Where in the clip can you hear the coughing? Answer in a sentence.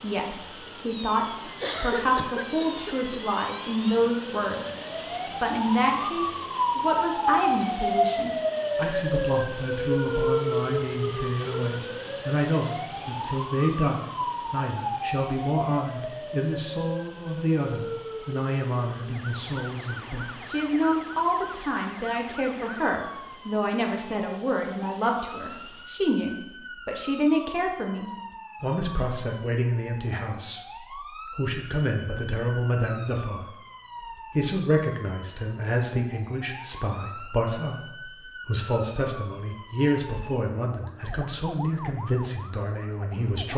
You can hear the coughing from 1.4 to 3.0 s.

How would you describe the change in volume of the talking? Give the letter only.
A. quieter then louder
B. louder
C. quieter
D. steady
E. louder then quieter
D.